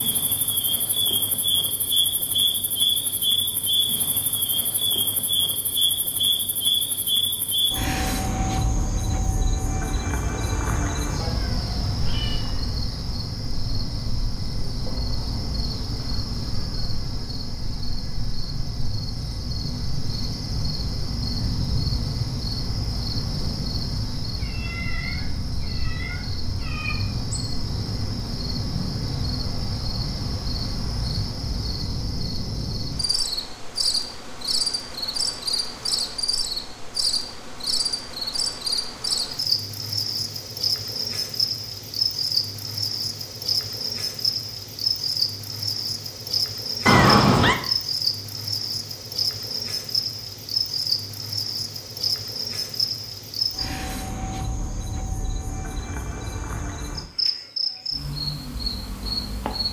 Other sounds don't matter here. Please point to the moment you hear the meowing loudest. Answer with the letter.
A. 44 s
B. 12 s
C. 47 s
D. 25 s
C.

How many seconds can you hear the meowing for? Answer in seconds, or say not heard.
5 s.